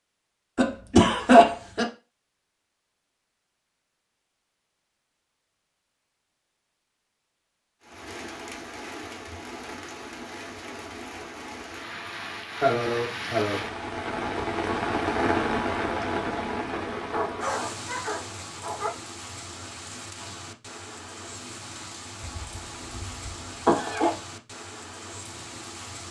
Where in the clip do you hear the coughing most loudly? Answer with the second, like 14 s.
1 s.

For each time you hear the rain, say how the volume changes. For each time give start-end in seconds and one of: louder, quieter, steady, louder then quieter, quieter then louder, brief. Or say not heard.
7.8-26.0 louder then quieter.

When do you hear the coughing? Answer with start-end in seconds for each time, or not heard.
0.6-1.9, 12.6-13.7, 22.2-24.1.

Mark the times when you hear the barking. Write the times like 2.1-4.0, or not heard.
17.0-18.9.